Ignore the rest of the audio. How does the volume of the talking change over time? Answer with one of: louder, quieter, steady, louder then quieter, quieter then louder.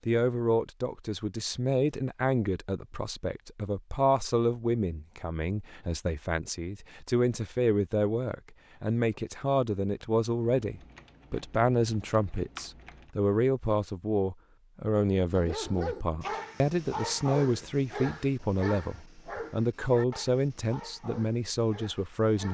steady.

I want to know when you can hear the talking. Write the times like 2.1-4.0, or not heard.
0.1-22.4.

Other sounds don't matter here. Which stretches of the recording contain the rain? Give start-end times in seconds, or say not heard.
not heard.